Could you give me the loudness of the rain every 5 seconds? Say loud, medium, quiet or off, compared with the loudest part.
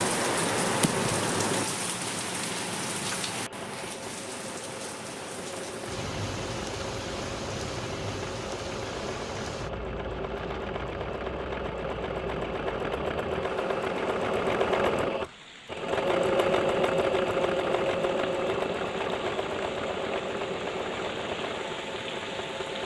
loud, medium, quiet, quiet, medium.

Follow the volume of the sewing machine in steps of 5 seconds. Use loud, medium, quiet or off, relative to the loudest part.
quiet, medium, loud, loud, medium.